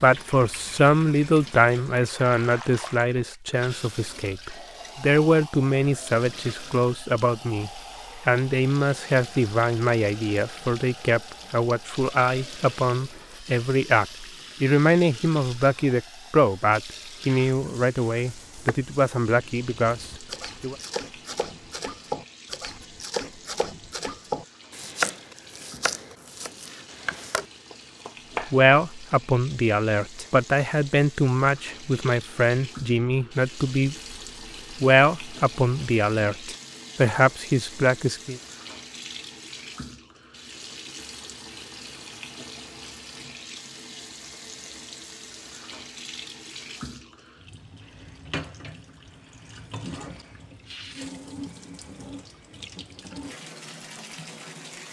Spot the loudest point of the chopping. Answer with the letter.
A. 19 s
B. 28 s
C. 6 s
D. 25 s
D.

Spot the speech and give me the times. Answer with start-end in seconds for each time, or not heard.
0.0-20.8, 28.5-34.0, 34.8-38.4.